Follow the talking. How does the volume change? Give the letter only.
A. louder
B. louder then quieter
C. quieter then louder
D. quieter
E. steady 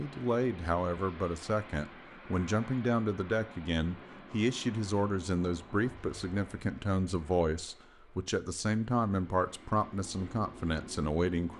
E.